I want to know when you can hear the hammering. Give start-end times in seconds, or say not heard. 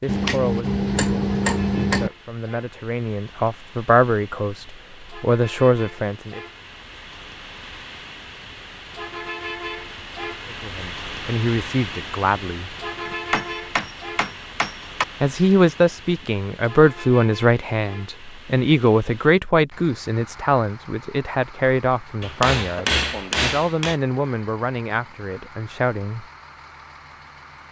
0.1-2.1, 13.1-15.1, 22.2-23.9.